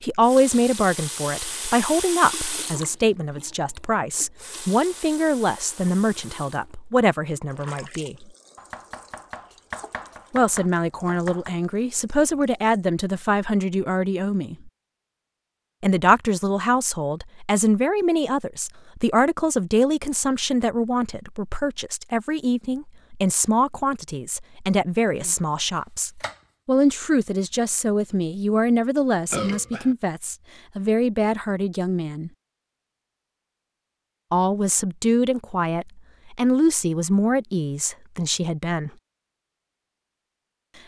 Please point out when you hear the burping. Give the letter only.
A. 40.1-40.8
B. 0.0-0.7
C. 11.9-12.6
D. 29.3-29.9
D.